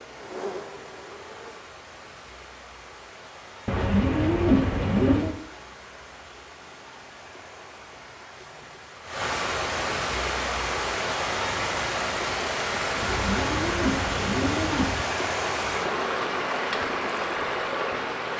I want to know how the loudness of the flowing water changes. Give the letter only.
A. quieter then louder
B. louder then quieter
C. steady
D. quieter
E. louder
E.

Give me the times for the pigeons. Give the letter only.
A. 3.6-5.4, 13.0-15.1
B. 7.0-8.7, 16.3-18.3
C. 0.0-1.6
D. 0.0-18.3
A.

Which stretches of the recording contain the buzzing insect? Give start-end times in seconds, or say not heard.
0.0-1.6.